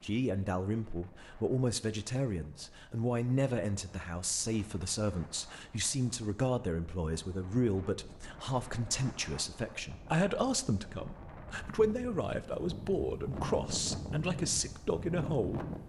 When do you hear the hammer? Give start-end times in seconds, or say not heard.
not heard.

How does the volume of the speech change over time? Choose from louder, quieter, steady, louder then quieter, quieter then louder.
steady.